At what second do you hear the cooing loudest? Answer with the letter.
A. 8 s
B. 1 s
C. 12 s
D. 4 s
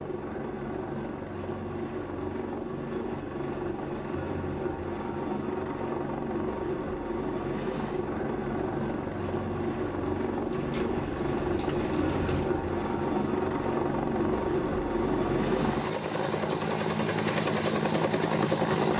C.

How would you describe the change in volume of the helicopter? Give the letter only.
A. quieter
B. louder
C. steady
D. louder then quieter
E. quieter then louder
B.